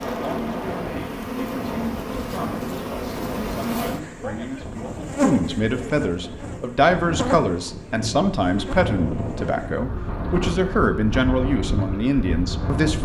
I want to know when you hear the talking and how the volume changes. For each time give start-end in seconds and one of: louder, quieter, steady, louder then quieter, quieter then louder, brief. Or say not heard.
0.1-13.0 louder.